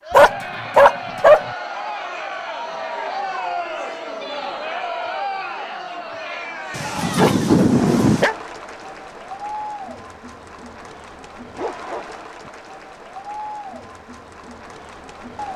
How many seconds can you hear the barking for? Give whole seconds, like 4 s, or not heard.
4 s.